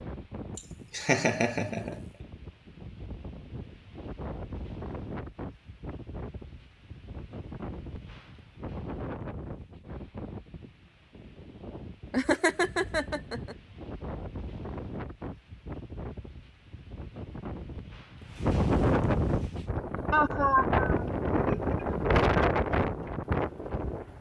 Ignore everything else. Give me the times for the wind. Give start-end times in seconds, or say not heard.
0.0-24.1.